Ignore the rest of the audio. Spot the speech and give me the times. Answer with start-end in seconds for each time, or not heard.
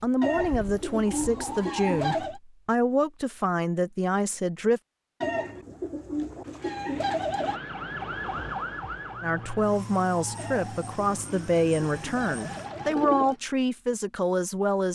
0.0-4.8, 9.2-14.9.